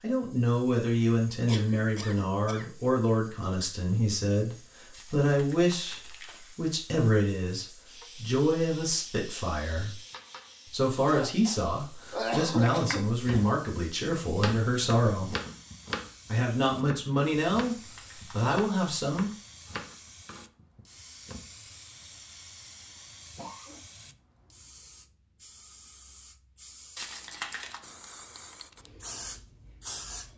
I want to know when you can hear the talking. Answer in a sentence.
The talking can be heard from 0.0 to 9.9 s, from 10.7 to 15.3 s and from 16.2 to 19.3 s.